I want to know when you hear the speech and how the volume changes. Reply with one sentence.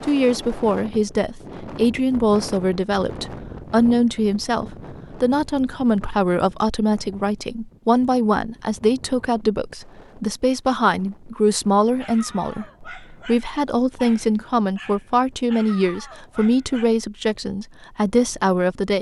You can hear the speech from 0.0 to 18.9 s, at a steady volume.